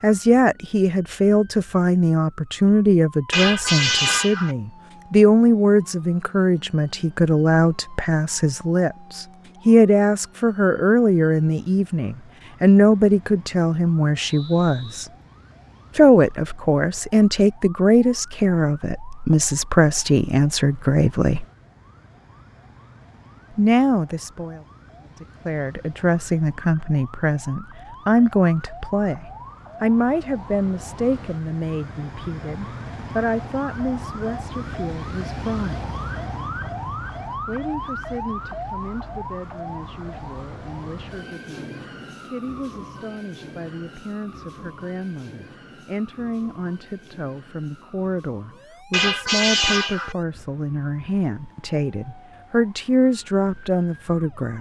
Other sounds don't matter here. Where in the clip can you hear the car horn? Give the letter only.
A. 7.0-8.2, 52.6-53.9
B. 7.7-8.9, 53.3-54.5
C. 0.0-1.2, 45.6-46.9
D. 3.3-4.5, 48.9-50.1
D.